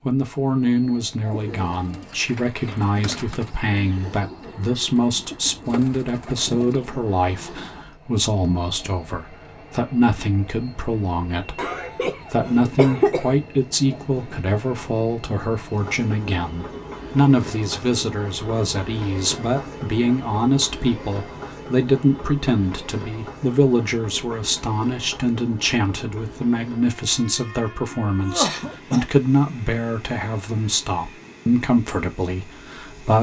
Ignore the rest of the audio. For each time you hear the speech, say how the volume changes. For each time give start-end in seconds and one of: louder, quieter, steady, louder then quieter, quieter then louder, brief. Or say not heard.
0.1-33.1 steady.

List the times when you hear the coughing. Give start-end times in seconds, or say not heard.
2.6-3.4, 11.6-13.3, 28.0-29.1.